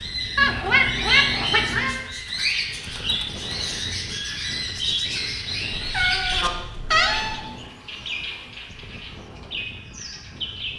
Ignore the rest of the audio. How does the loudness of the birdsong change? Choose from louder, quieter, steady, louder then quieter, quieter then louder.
quieter.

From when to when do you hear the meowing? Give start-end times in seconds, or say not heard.
0.3-2.0, 5.7-7.4.